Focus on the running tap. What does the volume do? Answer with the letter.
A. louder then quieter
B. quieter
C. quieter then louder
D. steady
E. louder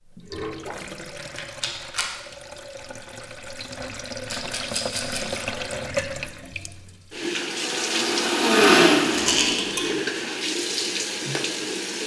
E.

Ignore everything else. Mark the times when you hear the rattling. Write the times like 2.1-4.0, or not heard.
1.1-2.1, 4.3-5.4, 9.2-9.9.